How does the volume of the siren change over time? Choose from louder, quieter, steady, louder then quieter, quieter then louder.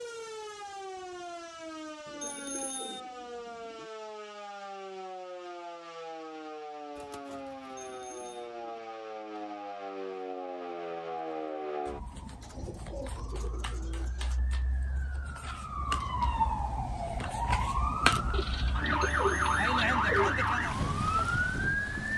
louder.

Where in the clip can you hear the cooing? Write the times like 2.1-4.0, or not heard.
2.0-3.9, 7.0-8.8, 12.4-14.4, 18.3-20.4.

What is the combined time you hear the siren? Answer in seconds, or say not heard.
22 s.